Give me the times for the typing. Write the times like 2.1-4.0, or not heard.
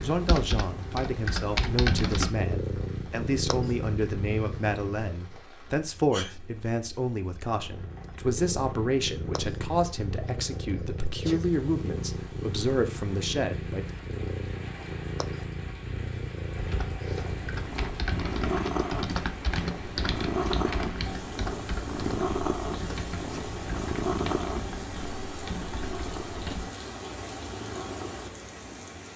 0.0-2.3, 16.6-26.6.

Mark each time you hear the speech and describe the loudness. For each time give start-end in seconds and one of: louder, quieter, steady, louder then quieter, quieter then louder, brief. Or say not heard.
0.0-13.8 steady.